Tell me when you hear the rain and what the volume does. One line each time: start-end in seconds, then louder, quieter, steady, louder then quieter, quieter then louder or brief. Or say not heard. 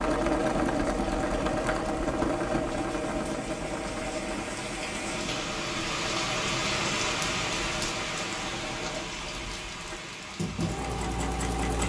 0.0-11.8 louder then quieter.